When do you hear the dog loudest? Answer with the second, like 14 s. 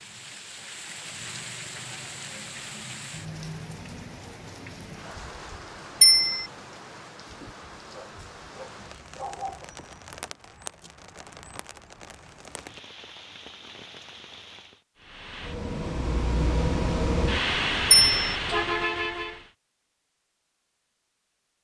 9 s.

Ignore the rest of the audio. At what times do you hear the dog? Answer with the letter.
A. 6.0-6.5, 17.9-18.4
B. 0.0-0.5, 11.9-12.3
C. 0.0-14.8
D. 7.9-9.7
D.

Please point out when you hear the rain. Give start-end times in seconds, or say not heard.
0.0-14.8.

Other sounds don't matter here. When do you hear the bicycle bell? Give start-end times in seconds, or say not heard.
6.0-6.5, 17.9-18.4.